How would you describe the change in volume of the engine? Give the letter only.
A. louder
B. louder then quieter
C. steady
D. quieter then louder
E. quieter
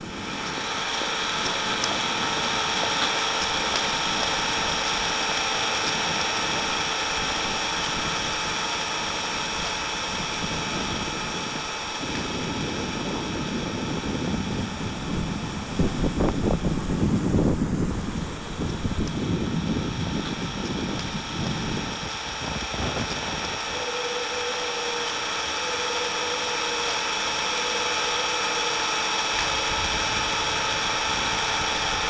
D.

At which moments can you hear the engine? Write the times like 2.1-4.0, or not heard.
0.0-32.0.